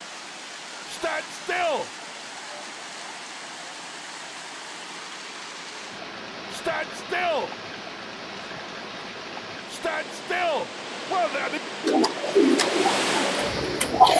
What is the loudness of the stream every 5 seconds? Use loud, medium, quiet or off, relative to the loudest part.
medium, medium, loud.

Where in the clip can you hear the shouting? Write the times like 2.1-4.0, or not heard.
0.8-1.9, 6.5-7.5, 9.7-11.6.